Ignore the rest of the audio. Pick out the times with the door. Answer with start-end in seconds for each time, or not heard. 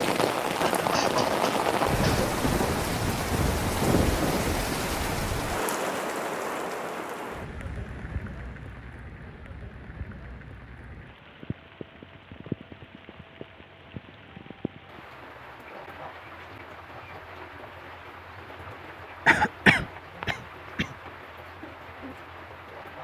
not heard.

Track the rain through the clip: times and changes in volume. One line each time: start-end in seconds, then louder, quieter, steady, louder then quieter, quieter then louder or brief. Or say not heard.
0.0-22.9 quieter.